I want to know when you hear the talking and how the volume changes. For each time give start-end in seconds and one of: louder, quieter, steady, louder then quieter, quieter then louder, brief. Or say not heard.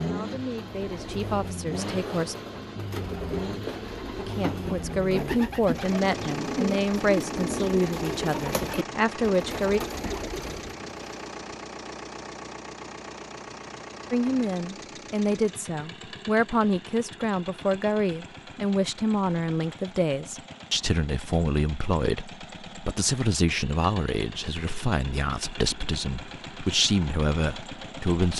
0.0-2.4 brief
4.2-9.8 steady
14.1-28.3 steady.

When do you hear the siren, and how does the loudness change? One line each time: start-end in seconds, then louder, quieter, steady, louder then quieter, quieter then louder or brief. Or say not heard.
not heard.